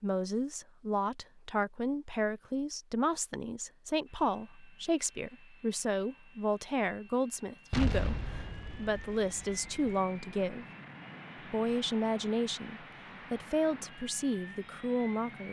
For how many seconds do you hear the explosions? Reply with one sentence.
You can hear the explosions for 2 seconds altogether.